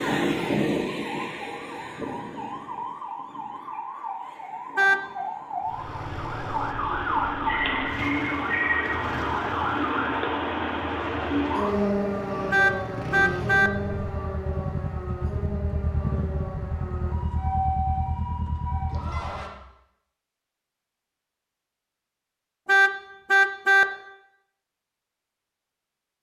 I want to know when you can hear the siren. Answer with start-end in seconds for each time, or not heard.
0.0-19.5.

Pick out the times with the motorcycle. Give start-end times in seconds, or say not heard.
5.6-19.5.